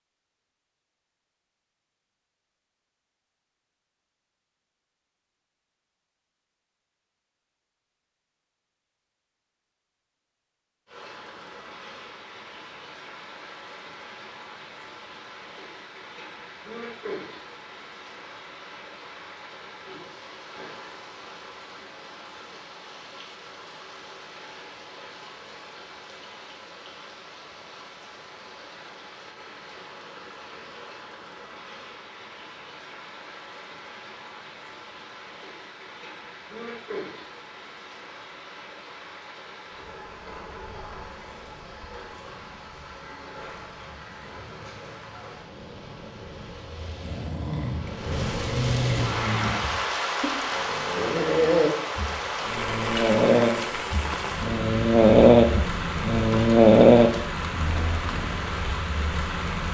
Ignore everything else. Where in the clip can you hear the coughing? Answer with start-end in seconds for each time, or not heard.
not heard.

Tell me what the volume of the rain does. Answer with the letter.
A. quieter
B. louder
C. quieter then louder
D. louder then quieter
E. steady
B.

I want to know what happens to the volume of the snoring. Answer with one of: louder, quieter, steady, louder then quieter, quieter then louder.
louder.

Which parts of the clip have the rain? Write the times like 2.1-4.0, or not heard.
10.8-59.7.